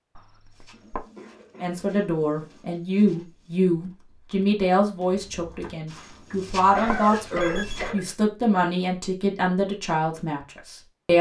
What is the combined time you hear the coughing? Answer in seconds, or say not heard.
4 s.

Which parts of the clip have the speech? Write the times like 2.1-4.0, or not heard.
1.6-11.1.